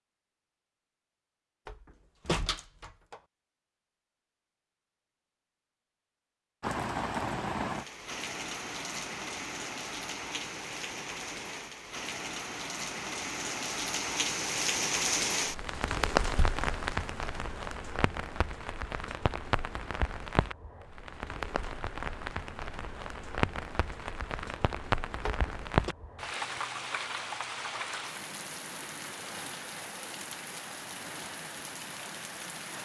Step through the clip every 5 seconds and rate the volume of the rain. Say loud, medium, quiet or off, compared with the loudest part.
off, loud, loud, loud, loud, loud, medium.